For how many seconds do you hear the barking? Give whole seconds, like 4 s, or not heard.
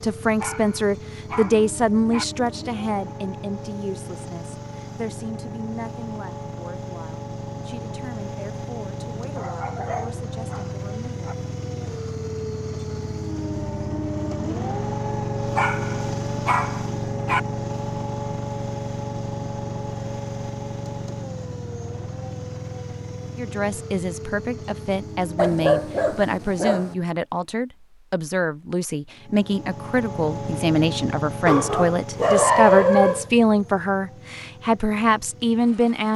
9 s.